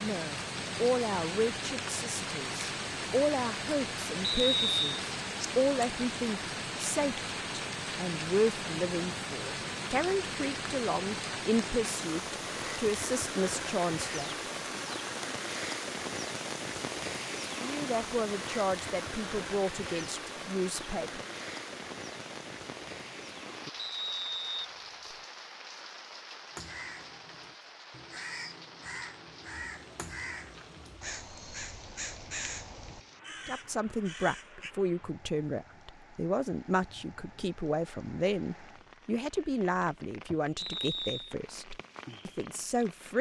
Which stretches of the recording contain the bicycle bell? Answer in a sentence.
You can't hear the bicycle bell here.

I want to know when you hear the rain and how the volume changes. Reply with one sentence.
You can hear the rain from 0.0 to 43.1 s, getting quieter.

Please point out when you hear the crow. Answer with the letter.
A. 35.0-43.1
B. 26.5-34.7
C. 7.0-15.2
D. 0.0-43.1
B.